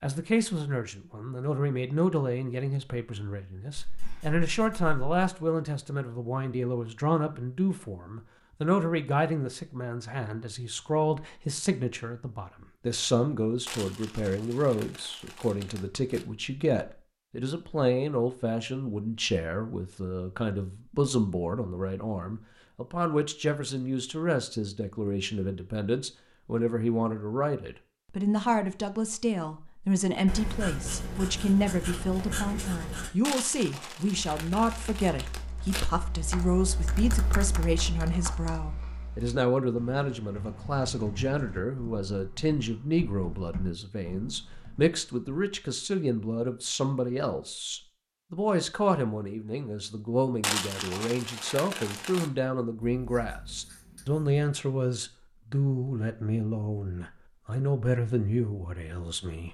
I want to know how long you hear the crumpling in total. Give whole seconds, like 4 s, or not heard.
7 s.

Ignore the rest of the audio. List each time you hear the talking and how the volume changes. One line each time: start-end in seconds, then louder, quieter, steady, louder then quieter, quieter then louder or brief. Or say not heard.
0.0-59.4 steady.